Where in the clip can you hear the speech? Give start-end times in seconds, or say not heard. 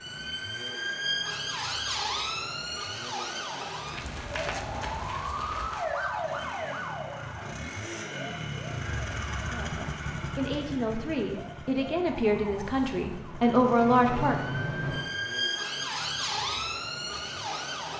9.4-14.3.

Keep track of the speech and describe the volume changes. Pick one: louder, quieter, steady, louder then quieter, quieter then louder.
louder.